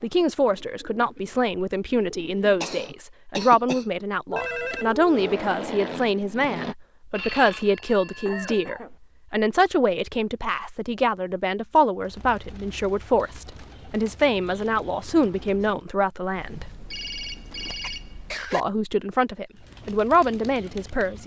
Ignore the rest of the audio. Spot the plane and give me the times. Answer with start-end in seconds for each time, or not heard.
5.1-6.8.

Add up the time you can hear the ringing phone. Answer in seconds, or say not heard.
5 s.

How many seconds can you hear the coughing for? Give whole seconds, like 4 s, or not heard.
3 s.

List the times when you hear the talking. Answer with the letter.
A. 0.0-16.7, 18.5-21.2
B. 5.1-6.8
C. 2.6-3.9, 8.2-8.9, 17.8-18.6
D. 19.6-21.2
A.